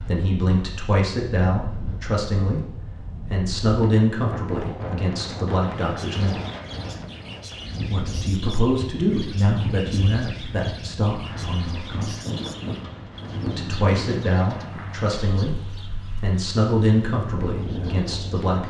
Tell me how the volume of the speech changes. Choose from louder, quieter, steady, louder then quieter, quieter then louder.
steady.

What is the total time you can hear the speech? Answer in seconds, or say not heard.
16 s.